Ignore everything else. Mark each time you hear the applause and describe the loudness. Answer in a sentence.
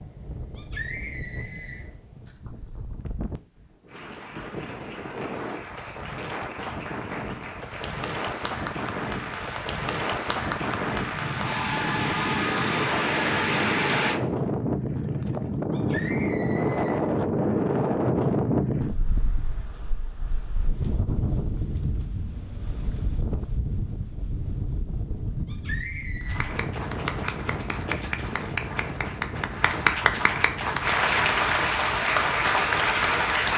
You can hear the applause from 3.9 to 14.2 s, getting louder; and from 26.2 to 33.5 s, getting louder.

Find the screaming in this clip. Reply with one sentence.
You can hear the screaming from 0.6 to 1.9 s, from 15.7 to 17.0 s and from 25.4 to 26.4 s.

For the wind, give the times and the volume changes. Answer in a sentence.
You can hear the wind from 0.0 to 33.5 s, getting louder then quieter.